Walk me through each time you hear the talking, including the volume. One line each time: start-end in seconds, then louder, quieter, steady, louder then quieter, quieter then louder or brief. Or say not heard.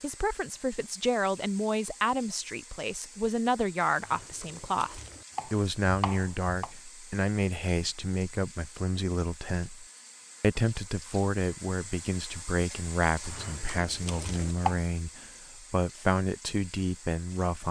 0.0-17.6 steady.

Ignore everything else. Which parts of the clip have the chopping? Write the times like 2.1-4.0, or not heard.
4.0-6.7, 13.2-14.8.